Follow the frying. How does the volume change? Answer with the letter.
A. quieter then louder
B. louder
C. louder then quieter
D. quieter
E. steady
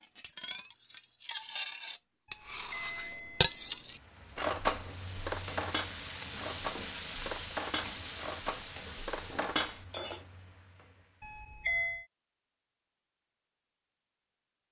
C.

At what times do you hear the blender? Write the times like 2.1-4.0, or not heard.
not heard.